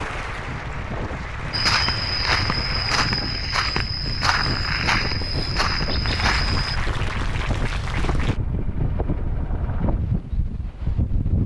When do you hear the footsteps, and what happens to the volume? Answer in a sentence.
The footsteps can be heard from 1.5 to 6.8 s, at a steady volume.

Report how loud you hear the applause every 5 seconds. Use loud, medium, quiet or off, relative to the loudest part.
loud, loud, off.